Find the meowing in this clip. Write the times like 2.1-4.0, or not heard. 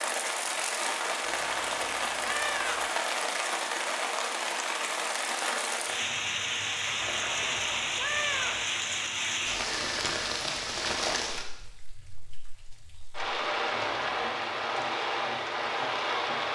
1.2-2.9, 7.0-8.7, 13.8-14.3.